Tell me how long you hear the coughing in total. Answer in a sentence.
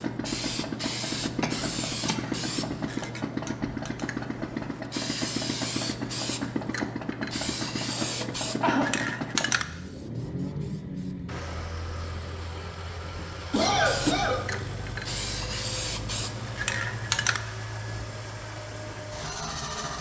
The coughing can be heard for 4 seconds in total.